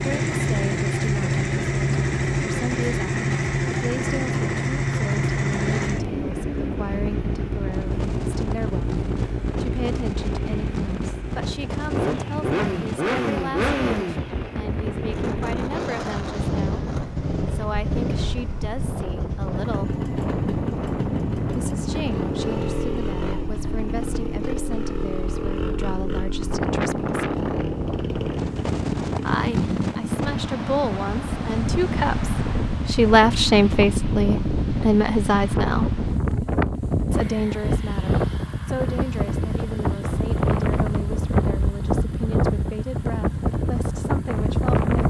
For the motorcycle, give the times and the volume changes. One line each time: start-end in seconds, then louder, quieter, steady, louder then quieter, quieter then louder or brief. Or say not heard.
0.0-45.0 quieter.